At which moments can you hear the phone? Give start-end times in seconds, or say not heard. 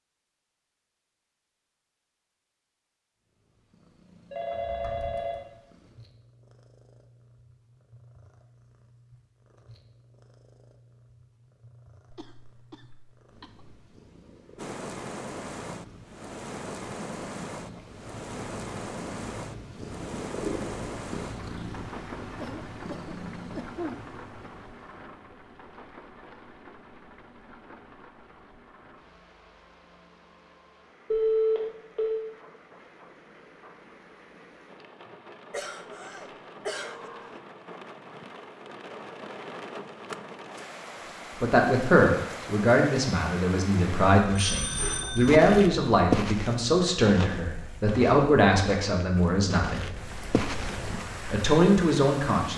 4.3-5.4, 31.1-32.2, 44.2-45.5.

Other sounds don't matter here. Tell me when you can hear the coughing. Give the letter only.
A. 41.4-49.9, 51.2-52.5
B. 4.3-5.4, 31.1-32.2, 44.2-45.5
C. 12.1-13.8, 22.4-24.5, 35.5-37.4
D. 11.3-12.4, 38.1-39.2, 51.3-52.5
C.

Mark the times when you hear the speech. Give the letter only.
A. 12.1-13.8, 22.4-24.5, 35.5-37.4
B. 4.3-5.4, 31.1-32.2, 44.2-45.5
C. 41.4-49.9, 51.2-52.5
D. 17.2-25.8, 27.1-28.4
C.